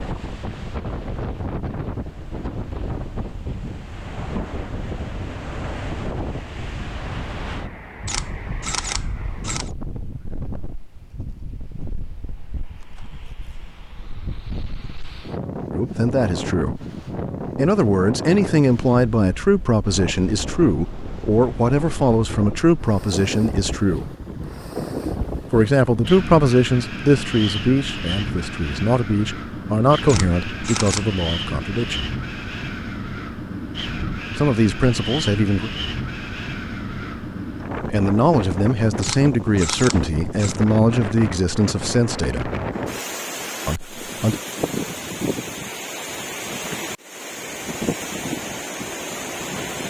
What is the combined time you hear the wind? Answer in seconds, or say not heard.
50 s.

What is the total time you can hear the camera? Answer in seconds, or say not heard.
4 s.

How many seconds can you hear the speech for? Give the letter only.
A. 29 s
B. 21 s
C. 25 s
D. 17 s
B.